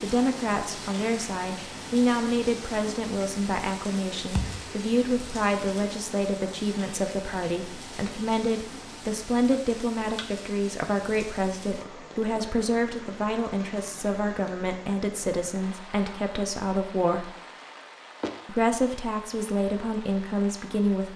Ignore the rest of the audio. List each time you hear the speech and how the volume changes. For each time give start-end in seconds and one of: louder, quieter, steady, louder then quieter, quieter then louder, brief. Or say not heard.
0.0-17.3 steady
18.4-21.1 brief.